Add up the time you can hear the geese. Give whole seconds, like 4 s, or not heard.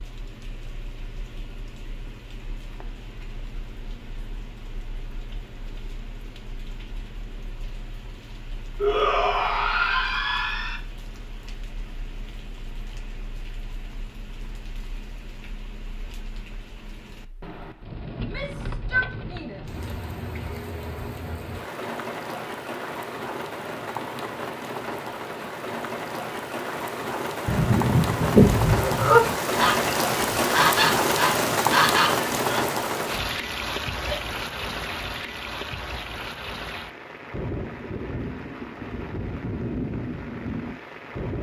5 s.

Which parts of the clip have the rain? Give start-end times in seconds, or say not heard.
0.0-41.3.